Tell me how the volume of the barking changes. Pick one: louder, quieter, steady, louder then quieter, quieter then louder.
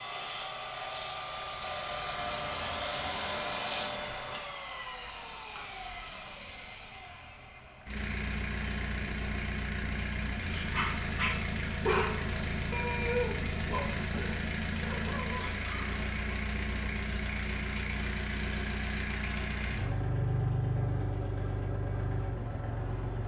quieter.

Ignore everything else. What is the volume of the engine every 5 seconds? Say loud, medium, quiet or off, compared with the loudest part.
loud, medium, loud, loud, loud.